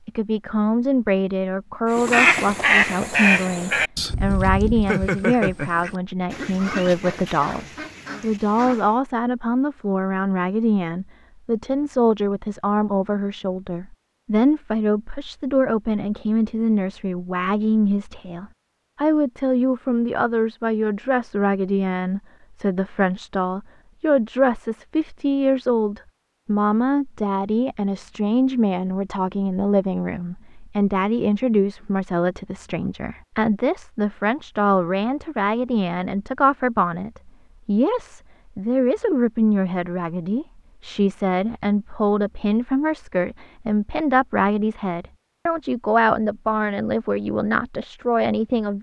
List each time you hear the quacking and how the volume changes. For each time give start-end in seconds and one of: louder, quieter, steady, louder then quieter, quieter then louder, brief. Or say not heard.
1.9-8.9 quieter.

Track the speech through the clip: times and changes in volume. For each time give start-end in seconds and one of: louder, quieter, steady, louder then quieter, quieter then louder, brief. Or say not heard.
0.1-48.7 steady.